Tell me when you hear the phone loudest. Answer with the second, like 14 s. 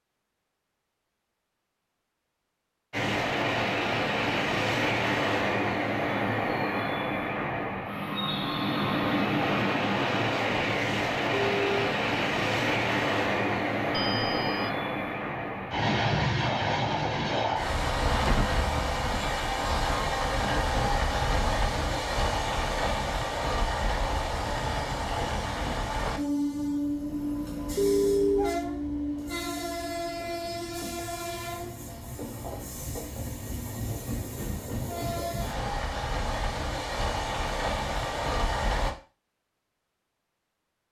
28 s.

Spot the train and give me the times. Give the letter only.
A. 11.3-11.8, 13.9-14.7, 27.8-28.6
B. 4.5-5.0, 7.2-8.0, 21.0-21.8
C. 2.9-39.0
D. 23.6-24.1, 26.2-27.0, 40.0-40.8
C.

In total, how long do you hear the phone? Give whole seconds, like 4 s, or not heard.
2 s.